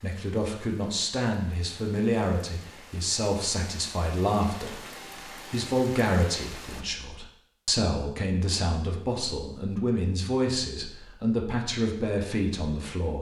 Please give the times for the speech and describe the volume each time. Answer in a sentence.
You can hear the speech from 0.0 to 13.1 s, at a steady volume.